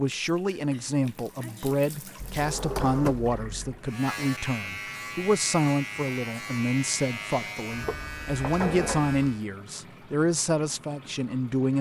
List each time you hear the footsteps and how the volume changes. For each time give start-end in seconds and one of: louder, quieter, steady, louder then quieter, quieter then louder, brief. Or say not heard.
not heard.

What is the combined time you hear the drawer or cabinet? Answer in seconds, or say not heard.
3 s.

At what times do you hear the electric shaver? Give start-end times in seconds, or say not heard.
3.8-9.4.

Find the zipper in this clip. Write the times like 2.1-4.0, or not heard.
not heard.